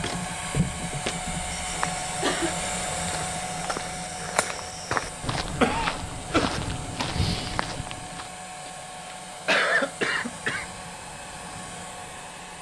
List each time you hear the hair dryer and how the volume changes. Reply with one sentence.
The hair dryer can be heard from 0.0 to 12.5 s, getting quieter.